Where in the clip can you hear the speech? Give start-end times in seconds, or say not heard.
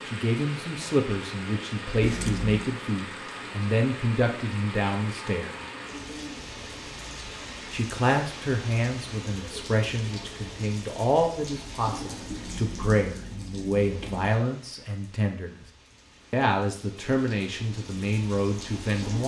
0.1-5.6, 7.7-15.7, 16.3-19.2.